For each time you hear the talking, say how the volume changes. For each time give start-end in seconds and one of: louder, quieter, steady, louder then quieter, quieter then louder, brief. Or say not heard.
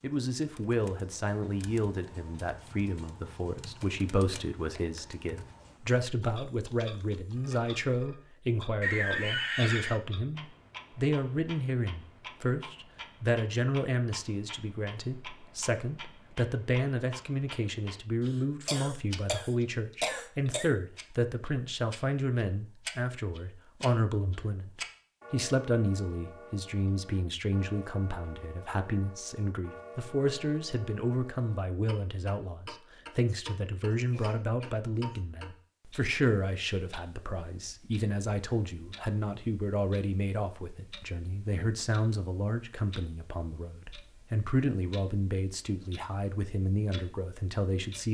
0.0-48.1 steady.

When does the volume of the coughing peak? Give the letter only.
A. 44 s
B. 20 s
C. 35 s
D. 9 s
D.